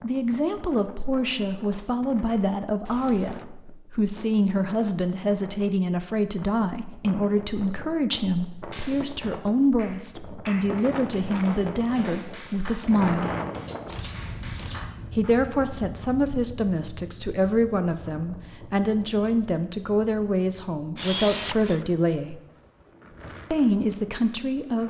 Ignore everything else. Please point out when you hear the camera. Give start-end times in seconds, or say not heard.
2.9-3.5, 13.7-14.9, 20.9-21.9.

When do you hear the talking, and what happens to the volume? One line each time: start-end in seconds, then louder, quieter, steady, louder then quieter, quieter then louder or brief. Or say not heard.
0.0-13.3 steady
15.2-22.4 steady
23.5-24.8 brief.